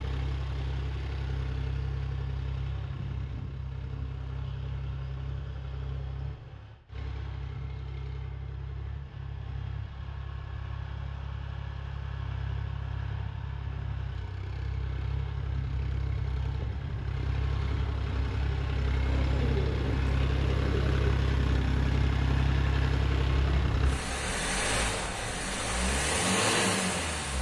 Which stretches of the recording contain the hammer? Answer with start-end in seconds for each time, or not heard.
not heard.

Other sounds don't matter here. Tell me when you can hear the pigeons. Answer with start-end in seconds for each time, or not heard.
19.1-21.1.